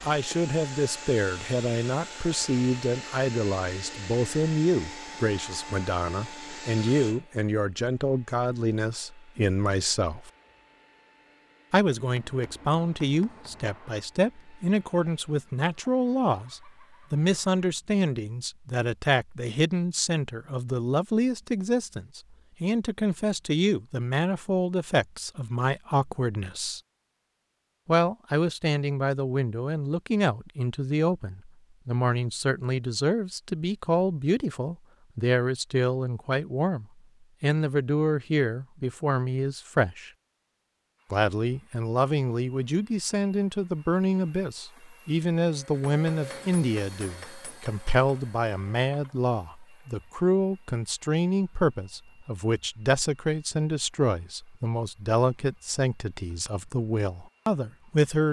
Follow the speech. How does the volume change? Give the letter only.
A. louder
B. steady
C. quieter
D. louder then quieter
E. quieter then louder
B.